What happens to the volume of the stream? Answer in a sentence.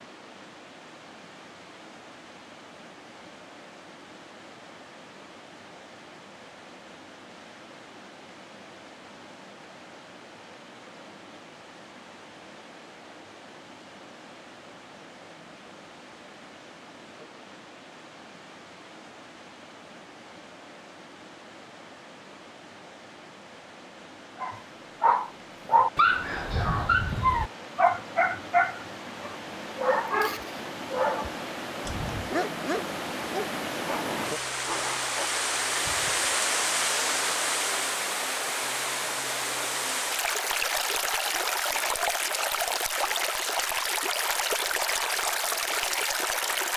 The volume of the stream goes up.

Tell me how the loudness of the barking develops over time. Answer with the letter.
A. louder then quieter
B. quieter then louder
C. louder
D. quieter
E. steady
D.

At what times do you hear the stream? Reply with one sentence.
The stream can be heard from 0.0 to 46.7 s.